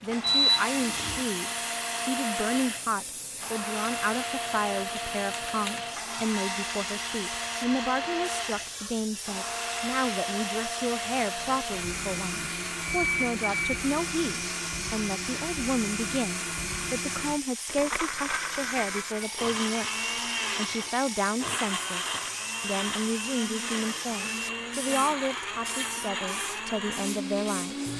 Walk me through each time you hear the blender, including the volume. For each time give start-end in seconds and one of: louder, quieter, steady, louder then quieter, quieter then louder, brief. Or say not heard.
0.0-27.9 steady.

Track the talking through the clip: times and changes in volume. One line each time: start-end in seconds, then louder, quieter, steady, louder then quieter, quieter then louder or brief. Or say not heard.
0.0-27.9 steady.